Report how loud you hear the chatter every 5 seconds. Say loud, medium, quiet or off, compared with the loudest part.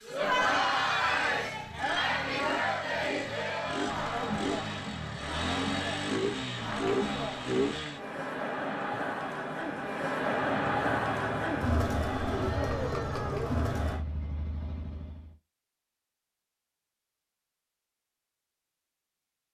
loud, medium, loud, off.